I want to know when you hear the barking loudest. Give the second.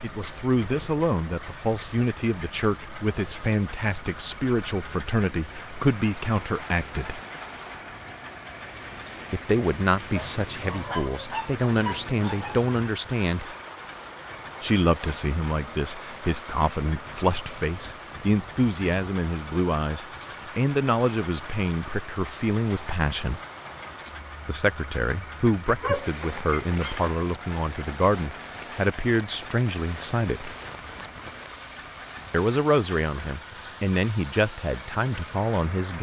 26 s.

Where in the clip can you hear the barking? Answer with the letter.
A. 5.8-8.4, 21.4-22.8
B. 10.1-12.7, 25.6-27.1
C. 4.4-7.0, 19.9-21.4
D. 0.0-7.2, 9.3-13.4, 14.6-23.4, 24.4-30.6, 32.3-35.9
B.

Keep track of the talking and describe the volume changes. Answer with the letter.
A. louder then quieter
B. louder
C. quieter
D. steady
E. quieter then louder
D.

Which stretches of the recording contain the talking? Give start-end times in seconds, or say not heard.
0.0-7.2, 9.3-13.4, 14.6-23.4, 24.4-30.6, 32.3-35.9.